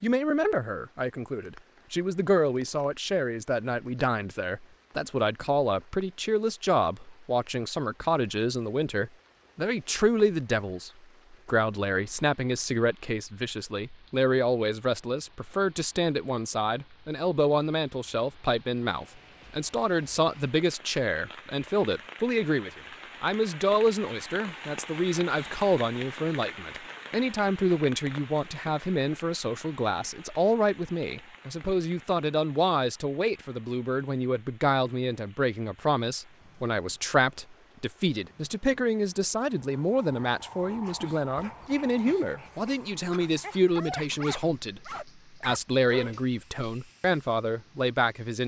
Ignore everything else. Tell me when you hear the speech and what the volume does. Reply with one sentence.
The speech can be heard from 0.0 to 48.4 s, at a steady volume.